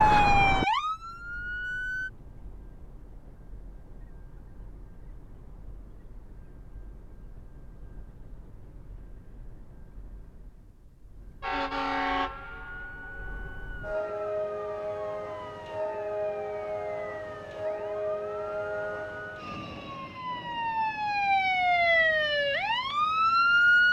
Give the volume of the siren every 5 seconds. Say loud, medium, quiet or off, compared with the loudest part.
loud, off, quiet, quiet, loud.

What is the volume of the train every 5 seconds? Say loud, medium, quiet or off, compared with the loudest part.
quiet, quiet, loud, loud, quiet.